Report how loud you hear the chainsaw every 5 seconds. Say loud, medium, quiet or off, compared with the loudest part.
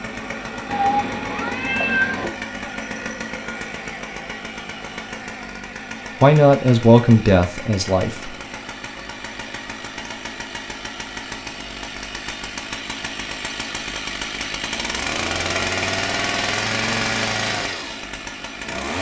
medium, medium, medium, loud.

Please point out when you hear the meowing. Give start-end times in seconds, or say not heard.
0.7-2.2.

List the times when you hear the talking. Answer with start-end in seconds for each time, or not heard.
6.2-8.3.